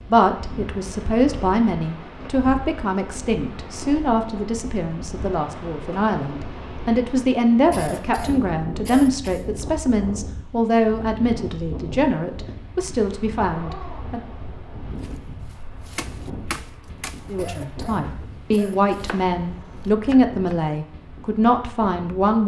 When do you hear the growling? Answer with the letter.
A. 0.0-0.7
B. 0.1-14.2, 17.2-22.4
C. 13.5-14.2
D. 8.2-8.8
C.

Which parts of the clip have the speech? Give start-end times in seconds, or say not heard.
0.1-14.2, 17.2-22.4.